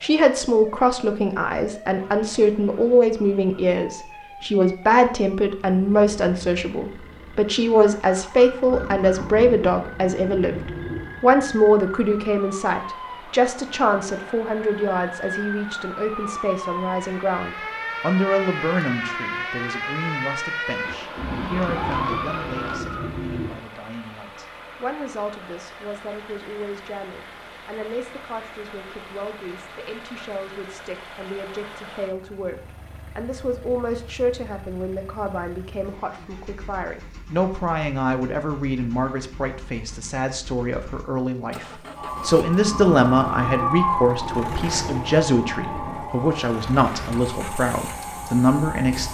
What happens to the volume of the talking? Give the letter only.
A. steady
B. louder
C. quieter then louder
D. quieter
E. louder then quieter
C.